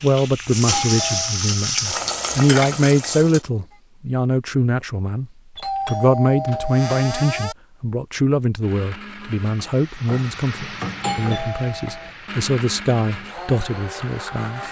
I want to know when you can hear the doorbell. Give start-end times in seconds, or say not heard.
0.7-1.4, 5.5-7.5, 11.0-12.1.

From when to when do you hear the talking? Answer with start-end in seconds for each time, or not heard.
0.0-14.6.